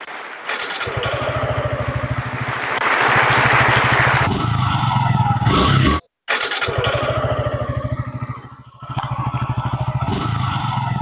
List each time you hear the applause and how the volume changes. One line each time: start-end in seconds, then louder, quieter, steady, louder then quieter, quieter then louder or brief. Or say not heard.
0.0-4.3 louder.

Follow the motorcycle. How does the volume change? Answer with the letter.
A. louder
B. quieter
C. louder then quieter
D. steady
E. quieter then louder
C.